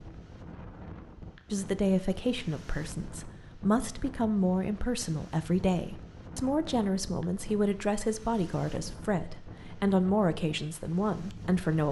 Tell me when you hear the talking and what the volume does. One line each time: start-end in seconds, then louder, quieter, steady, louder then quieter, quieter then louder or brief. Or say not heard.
1.5-11.8 steady.